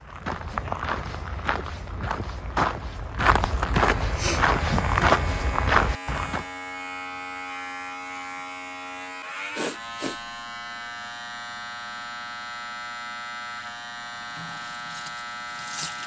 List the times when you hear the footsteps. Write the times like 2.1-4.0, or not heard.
0.0-6.5.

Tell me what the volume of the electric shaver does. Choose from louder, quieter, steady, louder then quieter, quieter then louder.
steady.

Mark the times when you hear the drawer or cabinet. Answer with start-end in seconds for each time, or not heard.
not heard.